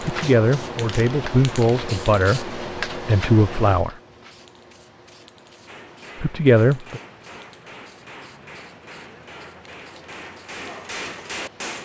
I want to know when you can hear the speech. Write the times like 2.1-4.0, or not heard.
0.0-4.0, 6.2-7.0.